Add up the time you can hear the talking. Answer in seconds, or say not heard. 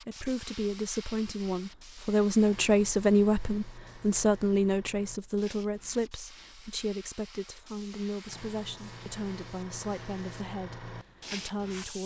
12 s.